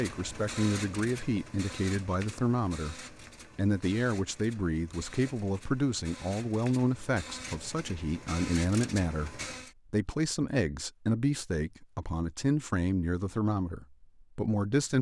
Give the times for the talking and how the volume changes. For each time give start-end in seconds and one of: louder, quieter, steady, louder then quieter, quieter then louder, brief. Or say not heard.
0.0-14.9 steady.